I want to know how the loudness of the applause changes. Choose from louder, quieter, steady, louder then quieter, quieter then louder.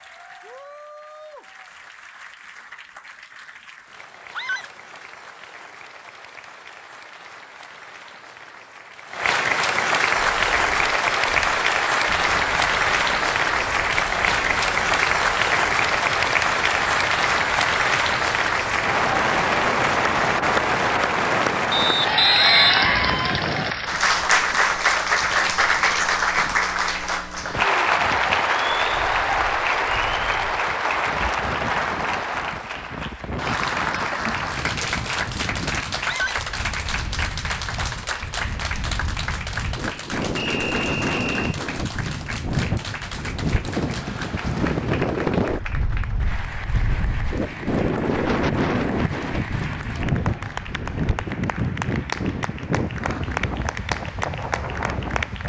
louder then quieter.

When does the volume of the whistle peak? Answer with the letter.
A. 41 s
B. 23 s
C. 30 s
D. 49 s
B.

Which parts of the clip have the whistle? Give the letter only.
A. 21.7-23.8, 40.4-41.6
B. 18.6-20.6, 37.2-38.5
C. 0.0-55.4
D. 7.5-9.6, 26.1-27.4
A.